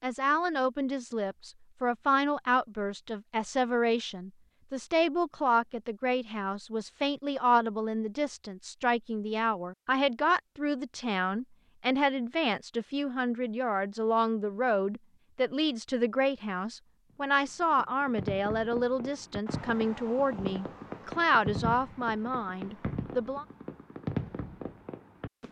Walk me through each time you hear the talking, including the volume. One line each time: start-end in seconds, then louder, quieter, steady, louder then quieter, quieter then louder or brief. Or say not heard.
0.0-23.4 steady.